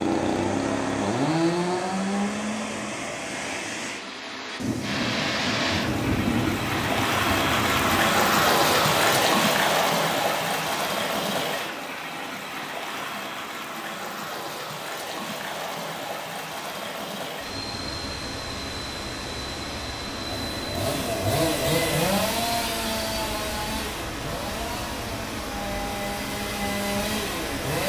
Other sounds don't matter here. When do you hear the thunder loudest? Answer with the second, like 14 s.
6 s.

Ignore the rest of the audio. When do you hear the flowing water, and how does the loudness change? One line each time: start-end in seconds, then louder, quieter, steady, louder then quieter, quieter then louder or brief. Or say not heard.
0.0-27.8 louder then quieter.